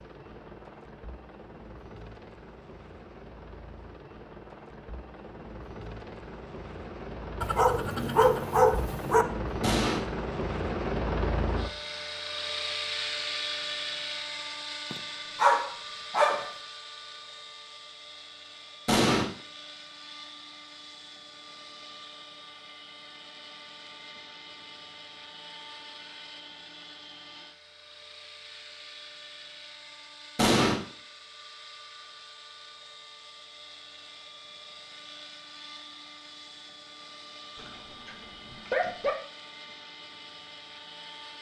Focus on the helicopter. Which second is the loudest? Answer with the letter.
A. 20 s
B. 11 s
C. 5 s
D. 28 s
B.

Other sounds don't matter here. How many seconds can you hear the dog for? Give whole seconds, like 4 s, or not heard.
5 s.